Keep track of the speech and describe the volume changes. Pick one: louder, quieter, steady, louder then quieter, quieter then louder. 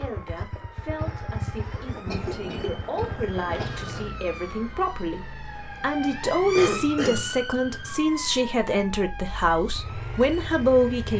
louder.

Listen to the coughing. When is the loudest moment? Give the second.
7 s.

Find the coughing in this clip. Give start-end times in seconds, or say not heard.
2.1-3.9, 6.5-7.3.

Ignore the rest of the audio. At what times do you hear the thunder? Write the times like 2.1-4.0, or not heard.
2.0-4.1.